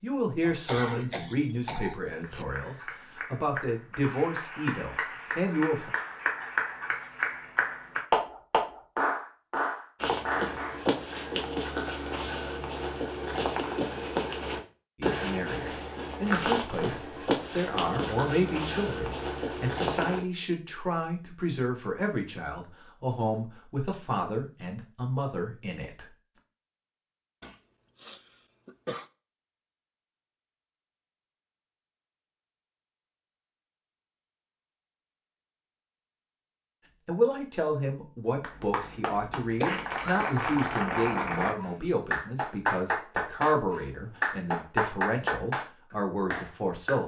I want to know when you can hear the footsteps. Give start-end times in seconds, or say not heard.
10.0-20.2.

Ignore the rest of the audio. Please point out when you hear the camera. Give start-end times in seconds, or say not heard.
not heard.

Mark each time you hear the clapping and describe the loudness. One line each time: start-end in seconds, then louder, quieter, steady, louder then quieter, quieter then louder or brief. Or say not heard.
2.2-10.8 louder
38.4-45.6 louder
46.3-47.0 brief.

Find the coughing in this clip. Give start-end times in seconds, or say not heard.
0.5-2.5, 27.4-29.1, 39.5-40.5.